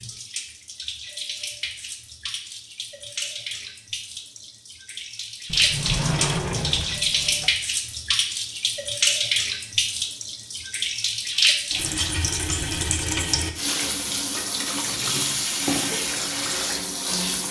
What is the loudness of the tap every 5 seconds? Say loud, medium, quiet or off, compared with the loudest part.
medium, loud, loud, loud.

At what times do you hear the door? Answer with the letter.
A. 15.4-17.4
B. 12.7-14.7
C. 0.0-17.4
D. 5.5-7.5
D.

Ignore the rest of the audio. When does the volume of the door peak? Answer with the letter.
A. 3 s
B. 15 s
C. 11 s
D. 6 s
D.